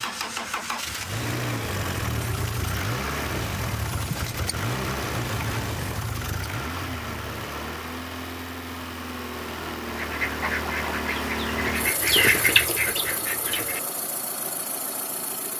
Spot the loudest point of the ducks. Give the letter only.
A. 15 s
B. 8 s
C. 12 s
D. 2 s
C.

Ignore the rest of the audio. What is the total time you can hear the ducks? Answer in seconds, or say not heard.
4 s.